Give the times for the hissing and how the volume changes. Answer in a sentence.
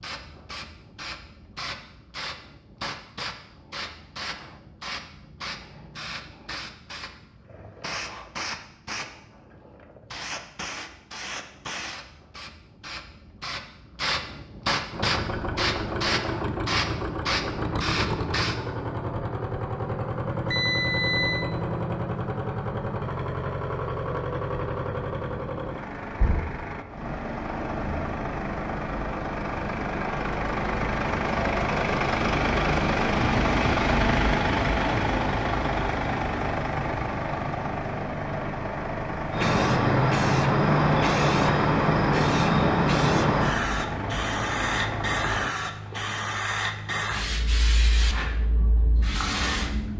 You can hear the hissing from 0.0 to 18.6 s, getting louder; and from 39.3 to 49.9 s, getting quieter.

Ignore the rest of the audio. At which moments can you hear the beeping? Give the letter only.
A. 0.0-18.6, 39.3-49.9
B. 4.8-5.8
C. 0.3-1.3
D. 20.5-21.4
D.